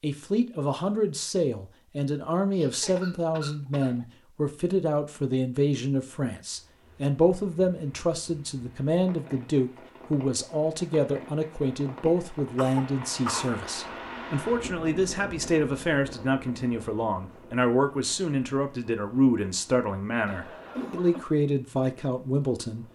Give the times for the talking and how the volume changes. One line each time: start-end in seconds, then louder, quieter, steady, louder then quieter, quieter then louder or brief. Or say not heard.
0.0-22.9 steady.